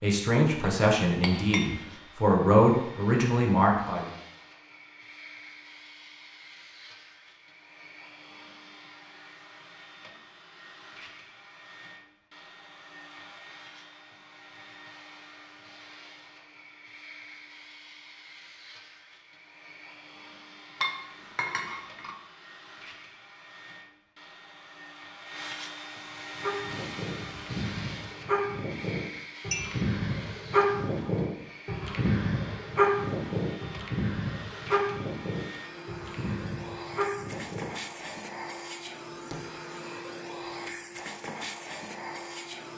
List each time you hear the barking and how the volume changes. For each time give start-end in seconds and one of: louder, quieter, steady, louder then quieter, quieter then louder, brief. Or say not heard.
26.4-38.0 louder then quieter.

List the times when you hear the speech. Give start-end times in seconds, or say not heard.
0.0-4.1.